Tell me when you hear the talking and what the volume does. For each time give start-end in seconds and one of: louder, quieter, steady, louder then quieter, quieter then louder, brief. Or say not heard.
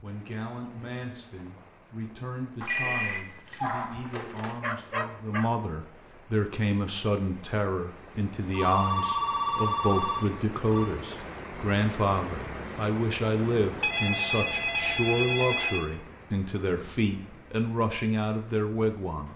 0.0-19.3 louder.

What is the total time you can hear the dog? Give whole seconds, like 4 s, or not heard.
2 s.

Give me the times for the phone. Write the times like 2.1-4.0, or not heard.
2.6-4.6, 8.5-10.9, 13.3-15.8.